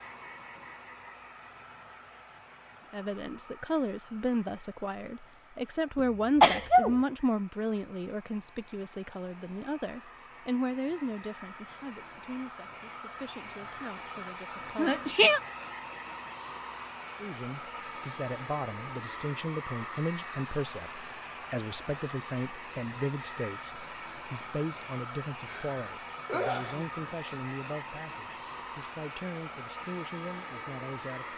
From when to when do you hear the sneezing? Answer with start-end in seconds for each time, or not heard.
6.4-7.0, 14.8-15.4, 25.4-26.9.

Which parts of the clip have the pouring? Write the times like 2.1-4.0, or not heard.
not heard.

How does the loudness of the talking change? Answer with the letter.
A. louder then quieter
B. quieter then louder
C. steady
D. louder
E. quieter
E.